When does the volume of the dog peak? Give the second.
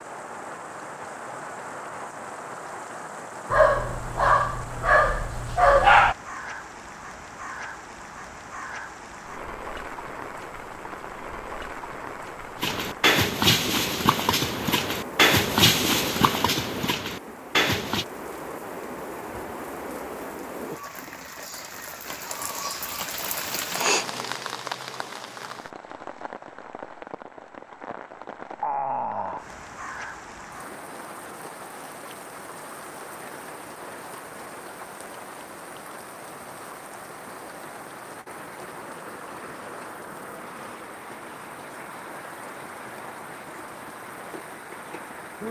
6 s.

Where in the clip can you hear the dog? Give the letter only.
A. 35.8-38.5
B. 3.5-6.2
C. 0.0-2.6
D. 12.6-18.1
B.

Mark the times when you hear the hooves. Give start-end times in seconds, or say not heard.
12.6-18.1.